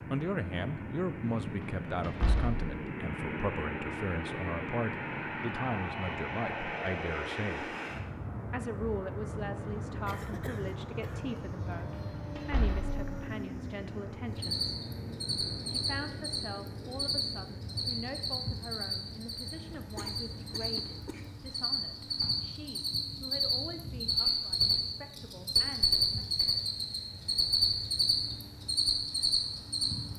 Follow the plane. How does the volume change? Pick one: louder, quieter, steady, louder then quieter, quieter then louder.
quieter.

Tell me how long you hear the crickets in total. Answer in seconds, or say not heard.
16 s.